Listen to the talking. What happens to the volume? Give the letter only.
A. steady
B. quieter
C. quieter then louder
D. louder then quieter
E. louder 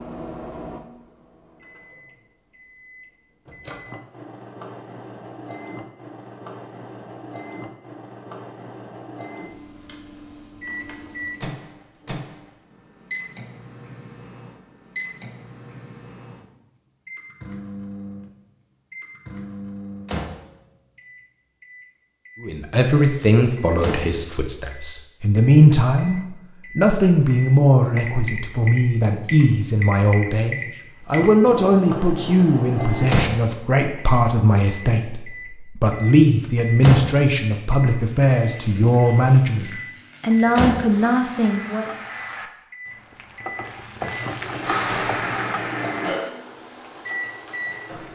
A.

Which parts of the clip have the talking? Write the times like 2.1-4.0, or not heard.
22.4-41.9.